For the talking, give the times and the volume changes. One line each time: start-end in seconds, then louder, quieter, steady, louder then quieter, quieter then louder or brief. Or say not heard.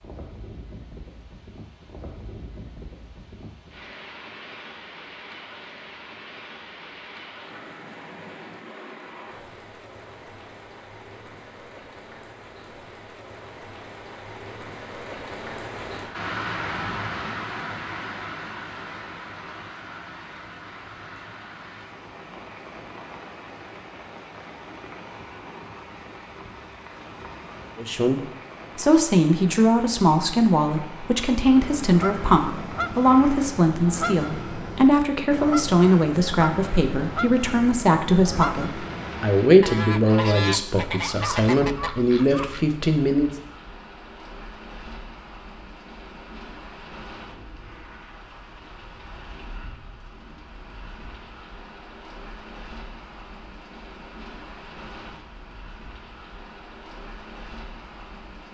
27.8-43.3 steady.